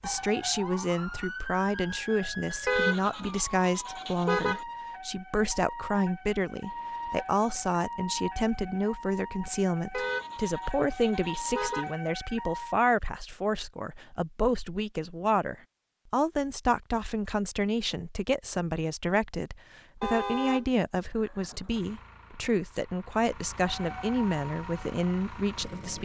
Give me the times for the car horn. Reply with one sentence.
The car horn can be heard from 2.6 to 4.7 s, from 9.9 to 11.9 s and from 20.0 to 20.7 s.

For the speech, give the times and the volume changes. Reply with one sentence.
The speech can be heard from 0.0 to 26.0 s, at a steady volume.